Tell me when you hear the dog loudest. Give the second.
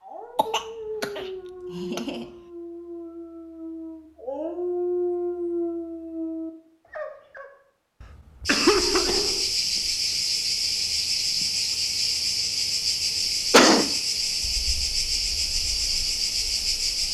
5 s.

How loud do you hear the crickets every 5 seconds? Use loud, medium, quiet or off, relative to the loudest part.
off, loud, loud, loud.